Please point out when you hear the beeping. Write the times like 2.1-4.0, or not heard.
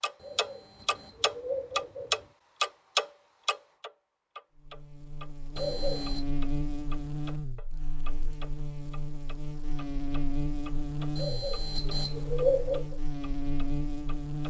0.1-2.2, 5.5-6.2, 11.2-12.9.